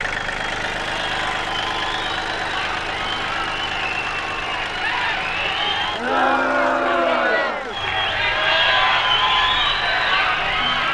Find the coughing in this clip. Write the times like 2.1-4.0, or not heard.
not heard.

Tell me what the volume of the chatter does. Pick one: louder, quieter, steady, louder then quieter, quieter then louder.
louder.